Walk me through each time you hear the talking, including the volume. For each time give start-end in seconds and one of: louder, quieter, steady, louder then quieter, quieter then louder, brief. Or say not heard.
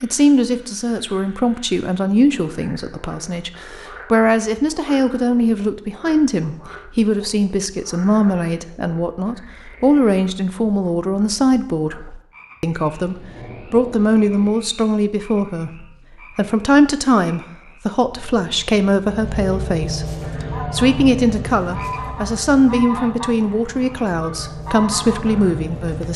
0.0-26.1 steady.